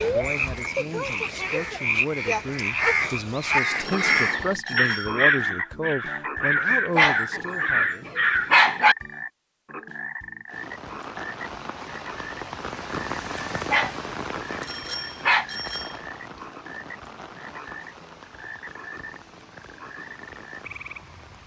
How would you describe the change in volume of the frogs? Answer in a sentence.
The volume of the frogs goes down.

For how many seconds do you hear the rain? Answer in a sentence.
The rain can be heard for 11 seconds in total.